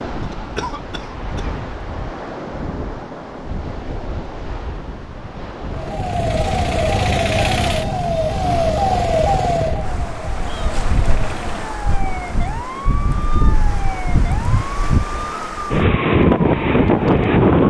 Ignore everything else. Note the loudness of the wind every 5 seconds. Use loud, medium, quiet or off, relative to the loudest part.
quiet, quiet, medium, loud.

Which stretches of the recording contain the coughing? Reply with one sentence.
The coughing can be heard from 0.2 to 1.6 s.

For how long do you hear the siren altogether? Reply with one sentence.
The siren can be heard for 12 seconds in total.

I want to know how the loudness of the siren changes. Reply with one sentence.
The volume of the siren goes down.